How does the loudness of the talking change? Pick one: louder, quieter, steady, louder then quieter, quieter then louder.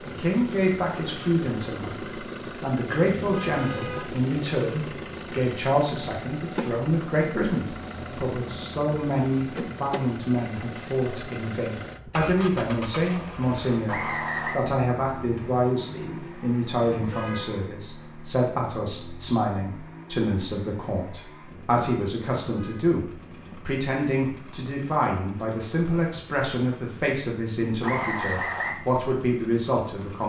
steady.